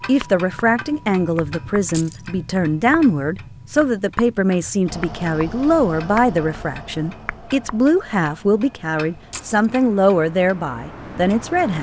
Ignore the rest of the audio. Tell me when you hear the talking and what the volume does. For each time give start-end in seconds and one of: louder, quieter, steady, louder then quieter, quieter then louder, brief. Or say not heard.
0.1-11.7 steady.